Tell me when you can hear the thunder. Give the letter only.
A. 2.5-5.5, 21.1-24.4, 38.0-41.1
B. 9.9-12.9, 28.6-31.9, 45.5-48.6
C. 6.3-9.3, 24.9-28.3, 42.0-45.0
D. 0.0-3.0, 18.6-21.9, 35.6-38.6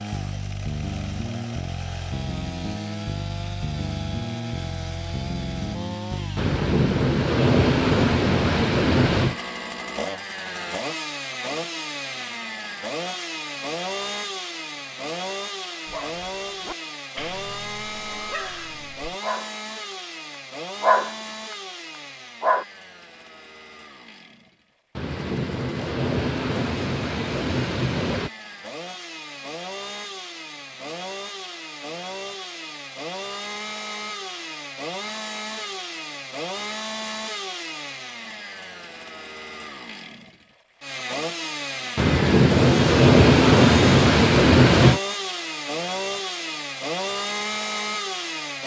C.